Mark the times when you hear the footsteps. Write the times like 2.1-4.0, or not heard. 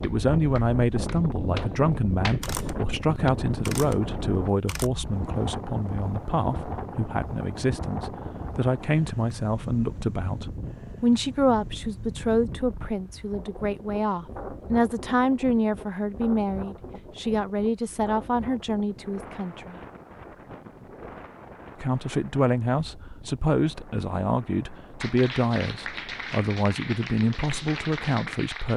not heard.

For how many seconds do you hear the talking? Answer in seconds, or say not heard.
27 s.